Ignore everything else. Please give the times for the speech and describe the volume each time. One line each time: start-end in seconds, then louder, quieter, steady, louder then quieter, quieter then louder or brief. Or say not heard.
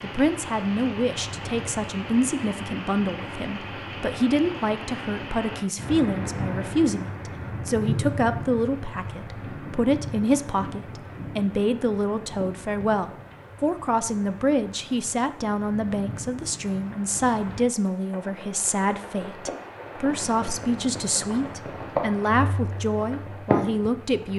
0.0-24.3 steady.